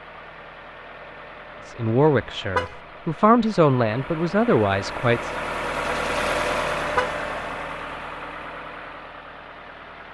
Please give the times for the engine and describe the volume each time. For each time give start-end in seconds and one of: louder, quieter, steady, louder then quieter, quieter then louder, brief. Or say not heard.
0.0-10.1 louder then quieter.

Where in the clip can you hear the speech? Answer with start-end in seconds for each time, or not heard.
1.6-5.3.